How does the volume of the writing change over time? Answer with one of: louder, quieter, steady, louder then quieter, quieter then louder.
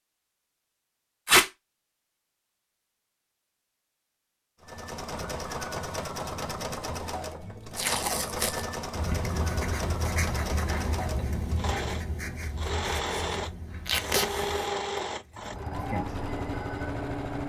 quieter.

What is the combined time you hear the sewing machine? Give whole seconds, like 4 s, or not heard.
13 s.